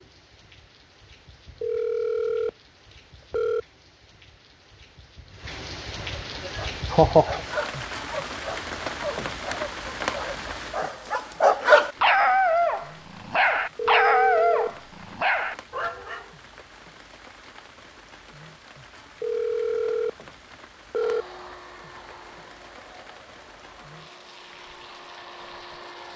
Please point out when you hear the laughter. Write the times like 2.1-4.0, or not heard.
6.5-7.4.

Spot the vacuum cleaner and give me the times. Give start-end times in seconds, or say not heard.
20.9-26.1.